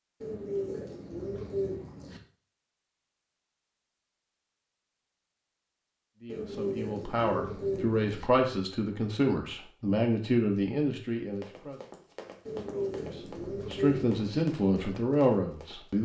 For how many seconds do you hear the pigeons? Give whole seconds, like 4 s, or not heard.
6 s.